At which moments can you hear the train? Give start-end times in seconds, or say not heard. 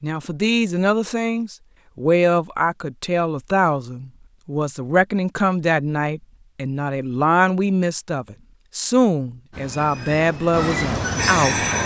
9.5-11.8.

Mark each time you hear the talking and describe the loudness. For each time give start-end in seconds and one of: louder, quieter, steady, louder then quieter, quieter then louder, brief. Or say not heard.
0.0-11.7 steady.